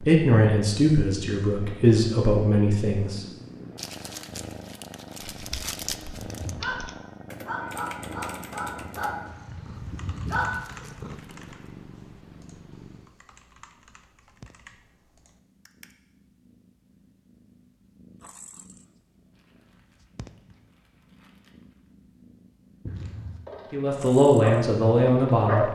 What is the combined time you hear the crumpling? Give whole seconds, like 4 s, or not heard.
7 s.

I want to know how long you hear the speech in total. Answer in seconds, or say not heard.
5 s.